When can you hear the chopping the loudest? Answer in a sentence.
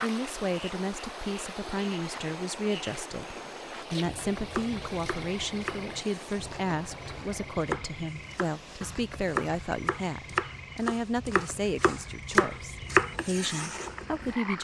The volume of the chopping peaks at 13 seconds.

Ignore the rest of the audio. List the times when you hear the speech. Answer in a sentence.
The speech can be heard from 0.0 to 14.5 s.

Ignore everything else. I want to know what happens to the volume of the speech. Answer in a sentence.
The volume of the speech stays about the same.